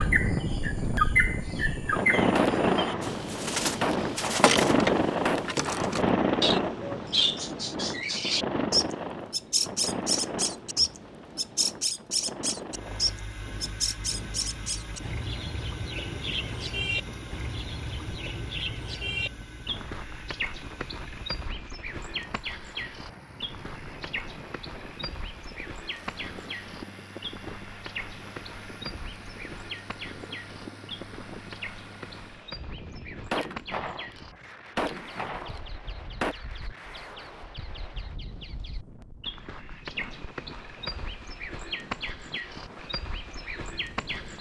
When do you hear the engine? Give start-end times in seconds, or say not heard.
12.7-32.5.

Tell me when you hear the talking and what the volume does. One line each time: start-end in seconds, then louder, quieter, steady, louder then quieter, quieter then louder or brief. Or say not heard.
not heard.